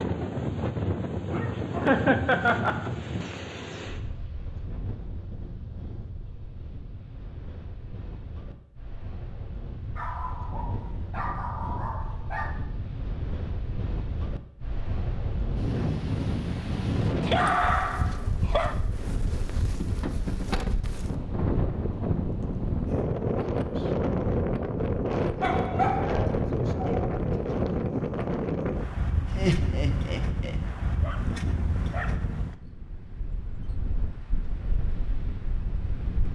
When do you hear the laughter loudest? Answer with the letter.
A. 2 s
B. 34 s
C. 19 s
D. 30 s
A.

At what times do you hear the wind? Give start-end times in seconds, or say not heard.
0.0-36.2.